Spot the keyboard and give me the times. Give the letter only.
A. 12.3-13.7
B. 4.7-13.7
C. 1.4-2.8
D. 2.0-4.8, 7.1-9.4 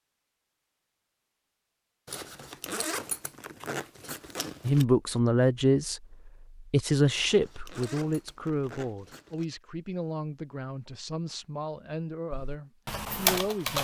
A.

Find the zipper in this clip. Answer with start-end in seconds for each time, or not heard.
2.0-4.8, 7.1-9.4.